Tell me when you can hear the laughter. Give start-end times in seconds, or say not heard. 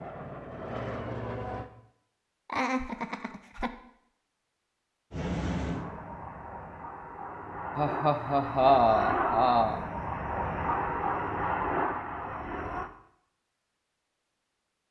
2.5-3.7, 7.8-9.8.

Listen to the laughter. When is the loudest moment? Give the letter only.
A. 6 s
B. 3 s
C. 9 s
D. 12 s
C.